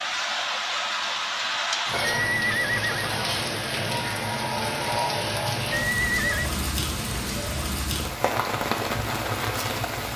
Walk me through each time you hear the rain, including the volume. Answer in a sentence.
You can hear the rain from 0.0 to 10.1 s, at a steady volume.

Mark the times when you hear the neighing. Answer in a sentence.
The neighing can be heard from 2.1 to 3.0 s and from 5.7 to 6.5 s.